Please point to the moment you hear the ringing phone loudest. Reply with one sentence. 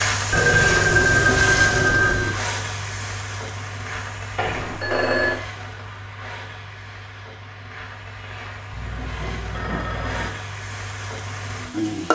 The volume of the ringing phone peaks at 1 second.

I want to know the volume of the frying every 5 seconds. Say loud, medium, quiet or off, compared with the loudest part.
loud, medium, loud.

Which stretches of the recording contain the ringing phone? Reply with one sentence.
The ringing phone can be heard from 0.3 to 2.4 s, from 4.3 to 5.4 s and from 8.7 to 10.3 s.